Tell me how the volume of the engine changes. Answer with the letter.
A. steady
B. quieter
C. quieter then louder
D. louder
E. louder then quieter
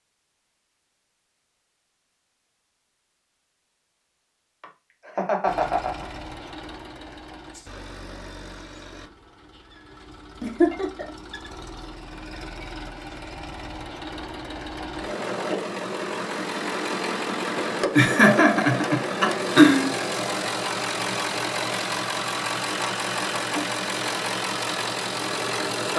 D.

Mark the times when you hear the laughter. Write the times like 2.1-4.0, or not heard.
4.6-6.2, 10.4-11.1, 17.9-19.9.